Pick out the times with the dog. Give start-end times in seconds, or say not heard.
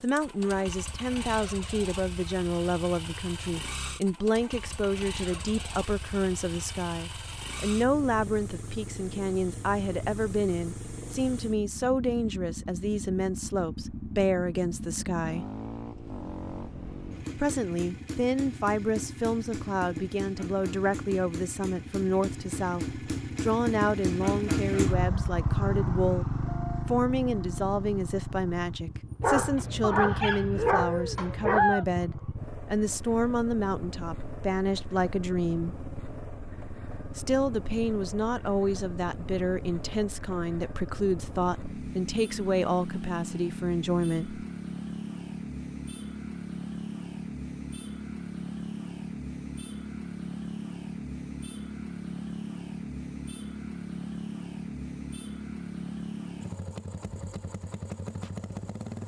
29.2-31.9.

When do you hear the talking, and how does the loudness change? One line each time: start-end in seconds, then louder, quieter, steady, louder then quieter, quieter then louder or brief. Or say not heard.
0.0-15.4 steady
17.4-35.8 steady
37.1-44.5 steady.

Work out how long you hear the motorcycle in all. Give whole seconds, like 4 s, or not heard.
59 s.